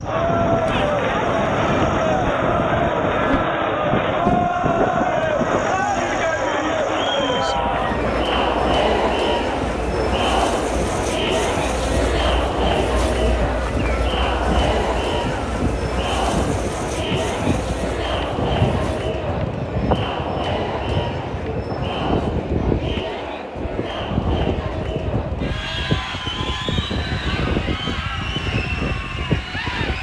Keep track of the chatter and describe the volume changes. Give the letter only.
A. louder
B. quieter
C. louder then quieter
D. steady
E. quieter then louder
B.